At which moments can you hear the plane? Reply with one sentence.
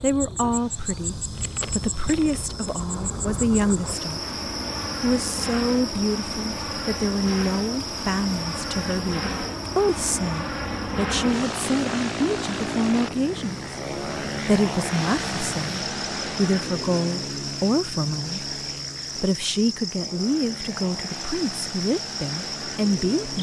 The plane can be heard from 0.0 to 23.3 s.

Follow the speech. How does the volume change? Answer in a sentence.
The loudness of the speech stays about the same.